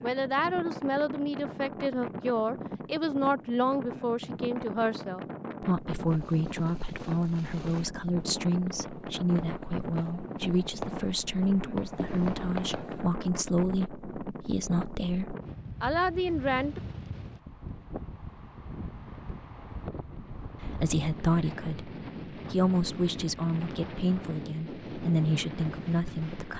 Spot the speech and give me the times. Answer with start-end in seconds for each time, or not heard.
0.0-16.8, 20.6-26.5.